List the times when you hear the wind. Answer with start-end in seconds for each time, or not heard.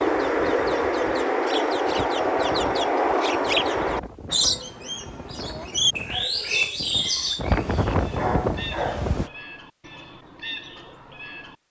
0.0-9.3.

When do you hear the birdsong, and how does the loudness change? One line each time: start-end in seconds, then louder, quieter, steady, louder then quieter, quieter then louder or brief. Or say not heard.
0.0-11.6 quieter.